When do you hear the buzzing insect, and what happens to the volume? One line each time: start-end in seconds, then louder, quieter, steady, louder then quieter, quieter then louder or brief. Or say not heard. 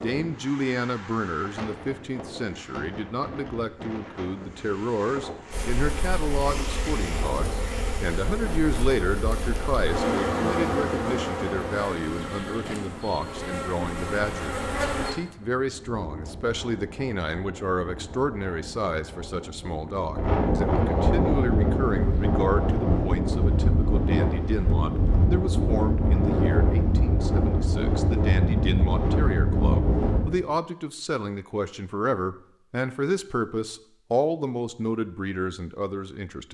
5.5-15.2 louder then quieter.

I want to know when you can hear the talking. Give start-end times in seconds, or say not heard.
0.0-36.4.